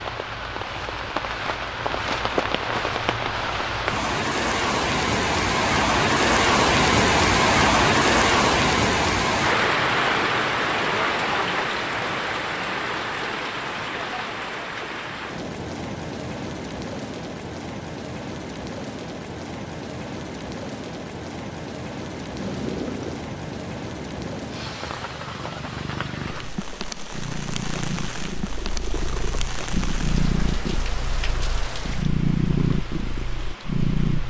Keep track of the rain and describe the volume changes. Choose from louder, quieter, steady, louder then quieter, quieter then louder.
quieter.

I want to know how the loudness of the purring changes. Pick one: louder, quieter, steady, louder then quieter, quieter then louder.
louder.